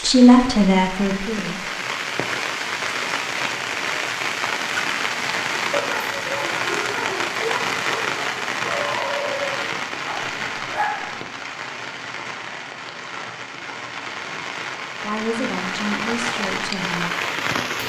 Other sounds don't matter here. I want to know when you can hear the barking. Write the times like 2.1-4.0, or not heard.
5.7-11.2.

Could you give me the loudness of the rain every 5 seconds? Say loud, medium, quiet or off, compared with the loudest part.
loud, loud, medium, loud.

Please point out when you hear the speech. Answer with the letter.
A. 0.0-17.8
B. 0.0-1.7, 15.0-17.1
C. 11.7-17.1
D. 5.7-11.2
B.